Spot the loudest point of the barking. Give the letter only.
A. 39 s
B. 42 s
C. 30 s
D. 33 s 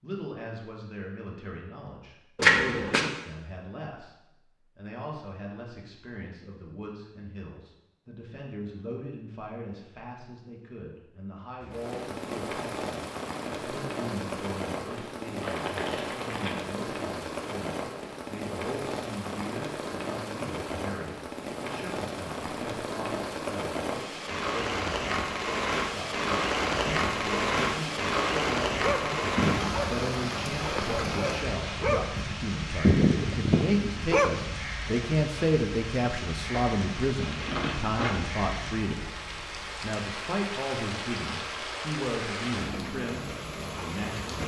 D.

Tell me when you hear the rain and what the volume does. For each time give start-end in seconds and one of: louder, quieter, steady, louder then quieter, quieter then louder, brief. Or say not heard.
11.6-44.4 louder then quieter.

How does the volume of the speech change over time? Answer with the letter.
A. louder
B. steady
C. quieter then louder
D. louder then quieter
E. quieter
A.